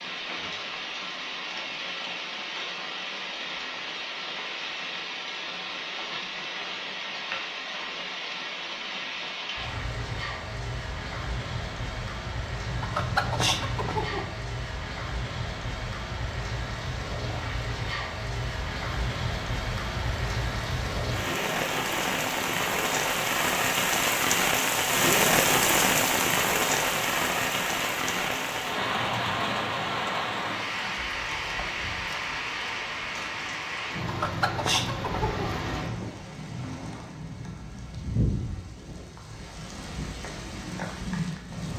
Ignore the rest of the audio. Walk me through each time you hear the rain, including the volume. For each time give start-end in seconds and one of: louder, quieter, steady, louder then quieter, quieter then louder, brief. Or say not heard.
0.0-41.7 louder then quieter.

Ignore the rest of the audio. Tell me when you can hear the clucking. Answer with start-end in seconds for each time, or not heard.
12.7-14.3, 34.0-35.6.